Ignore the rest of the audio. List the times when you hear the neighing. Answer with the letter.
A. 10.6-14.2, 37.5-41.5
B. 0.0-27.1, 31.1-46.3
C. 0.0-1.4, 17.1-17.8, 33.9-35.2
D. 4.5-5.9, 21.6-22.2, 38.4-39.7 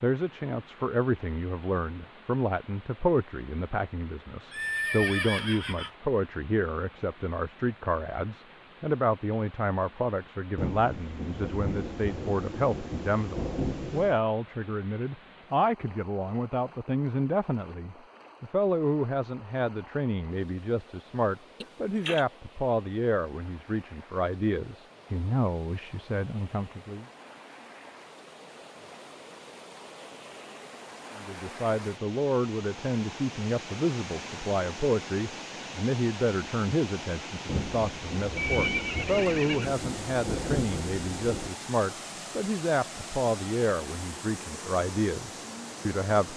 D.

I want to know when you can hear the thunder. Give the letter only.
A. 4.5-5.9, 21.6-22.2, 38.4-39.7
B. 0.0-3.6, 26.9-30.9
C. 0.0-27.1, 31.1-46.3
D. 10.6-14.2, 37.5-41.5
D.